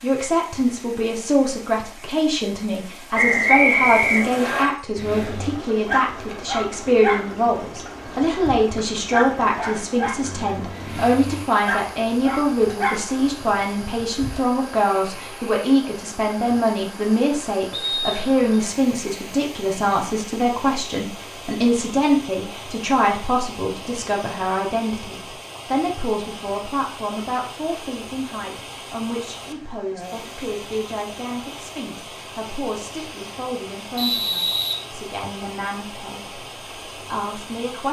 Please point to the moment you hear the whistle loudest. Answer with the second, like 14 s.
4 s.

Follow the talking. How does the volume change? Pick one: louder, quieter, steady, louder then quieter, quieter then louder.
quieter.